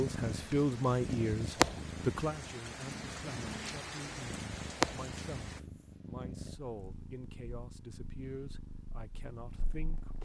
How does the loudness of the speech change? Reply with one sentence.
The volume of the speech goes down.